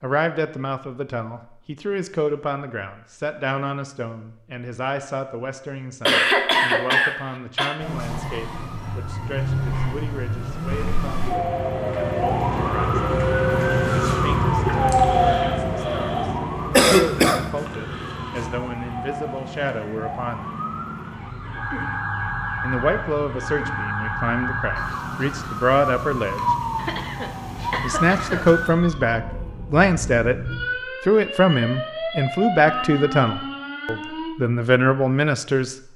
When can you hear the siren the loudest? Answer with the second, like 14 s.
15 s.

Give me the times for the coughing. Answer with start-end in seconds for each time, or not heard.
6.0-7.8, 16.7-17.4, 26.8-28.5.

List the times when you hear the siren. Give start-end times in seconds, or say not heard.
7.8-34.3.